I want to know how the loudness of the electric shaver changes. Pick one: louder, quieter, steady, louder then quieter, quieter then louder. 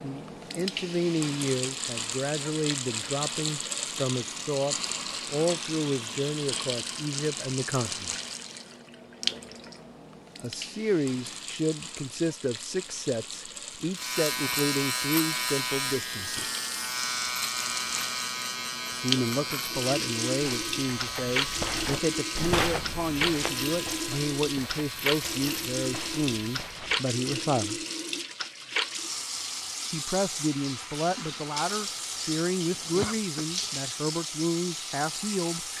quieter.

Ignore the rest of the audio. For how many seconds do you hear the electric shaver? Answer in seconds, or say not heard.
13 s.